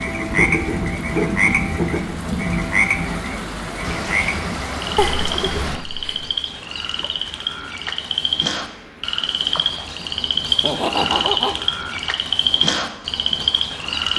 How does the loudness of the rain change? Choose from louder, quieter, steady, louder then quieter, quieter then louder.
quieter.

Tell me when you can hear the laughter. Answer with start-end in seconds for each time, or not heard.
0.2-2.0, 5.0-6.2, 10.4-11.6.